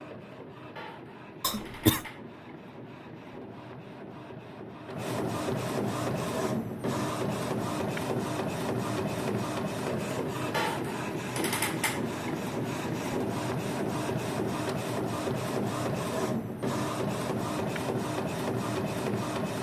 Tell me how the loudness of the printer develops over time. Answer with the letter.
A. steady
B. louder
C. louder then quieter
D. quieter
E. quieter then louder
B.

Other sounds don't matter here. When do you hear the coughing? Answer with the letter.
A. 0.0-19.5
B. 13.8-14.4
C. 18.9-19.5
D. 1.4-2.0
D.